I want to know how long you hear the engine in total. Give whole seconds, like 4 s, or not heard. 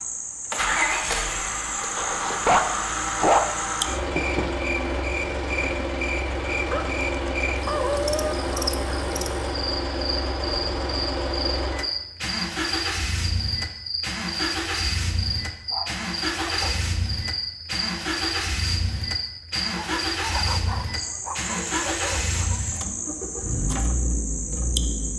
25 s.